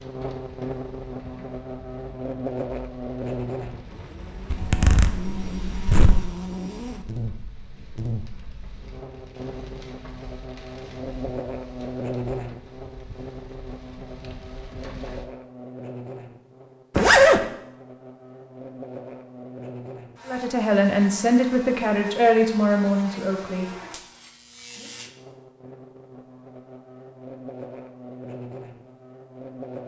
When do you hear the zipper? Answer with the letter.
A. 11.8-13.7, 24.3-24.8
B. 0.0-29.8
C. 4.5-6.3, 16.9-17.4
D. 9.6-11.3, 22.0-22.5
C.